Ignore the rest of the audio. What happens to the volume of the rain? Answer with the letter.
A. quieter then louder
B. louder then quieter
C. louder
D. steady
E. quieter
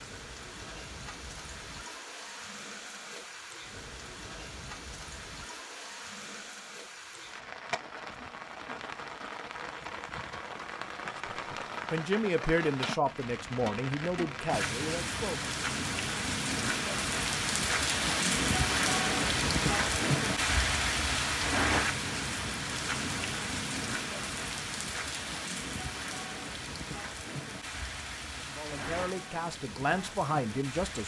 B.